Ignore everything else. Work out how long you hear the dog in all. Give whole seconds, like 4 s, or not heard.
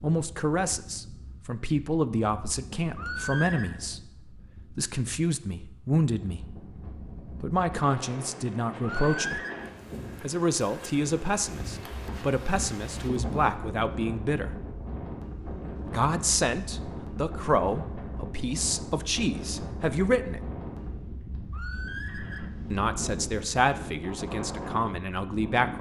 not heard.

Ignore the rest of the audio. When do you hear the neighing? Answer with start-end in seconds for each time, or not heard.
3.0-3.8, 8.8-9.7, 21.5-22.5.